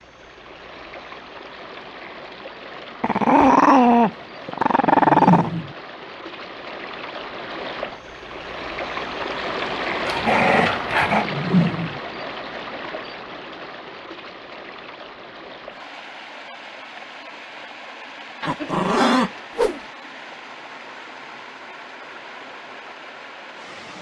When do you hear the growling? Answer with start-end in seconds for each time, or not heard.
3.0-5.5, 10.1-11.2, 18.4-19.3.